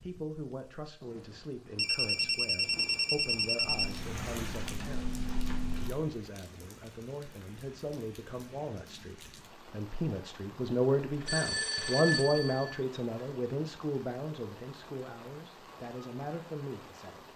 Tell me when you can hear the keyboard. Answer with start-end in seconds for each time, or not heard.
3.6-6.0.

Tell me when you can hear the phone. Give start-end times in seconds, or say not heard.
1.8-4.0, 11.2-12.8.